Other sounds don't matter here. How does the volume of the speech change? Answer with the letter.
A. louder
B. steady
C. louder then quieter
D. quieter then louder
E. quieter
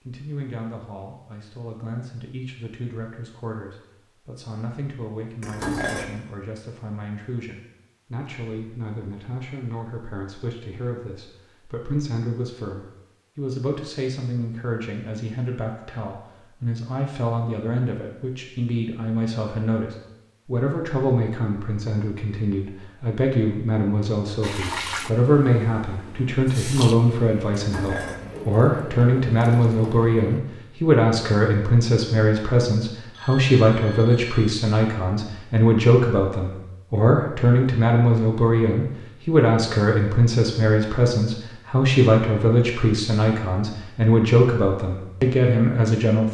A.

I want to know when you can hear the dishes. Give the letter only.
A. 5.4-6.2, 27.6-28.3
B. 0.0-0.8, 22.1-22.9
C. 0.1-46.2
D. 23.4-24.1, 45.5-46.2
A.